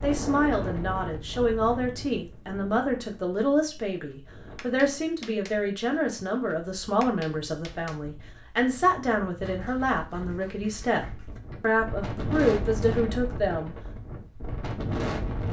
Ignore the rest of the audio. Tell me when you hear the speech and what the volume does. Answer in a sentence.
The speech can be heard from 0.0 to 13.8 s, at a steady volume.